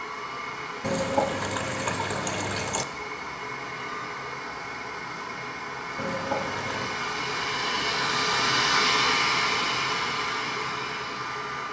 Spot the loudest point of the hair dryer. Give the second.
9 s.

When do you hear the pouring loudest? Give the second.
1 s.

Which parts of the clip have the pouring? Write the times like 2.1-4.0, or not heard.
0.8-2.9, 6.0-7.0.